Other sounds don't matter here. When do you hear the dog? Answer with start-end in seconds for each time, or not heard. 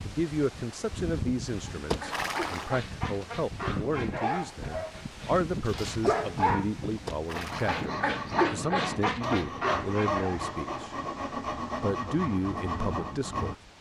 1.8-10.4.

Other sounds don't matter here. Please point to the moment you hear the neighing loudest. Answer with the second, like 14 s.
2 s.